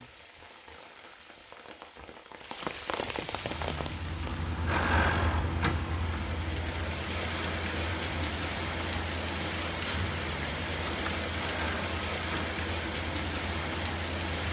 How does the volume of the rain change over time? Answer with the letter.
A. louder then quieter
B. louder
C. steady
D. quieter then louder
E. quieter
B.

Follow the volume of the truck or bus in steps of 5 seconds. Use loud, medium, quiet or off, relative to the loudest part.
loud, loud, medium.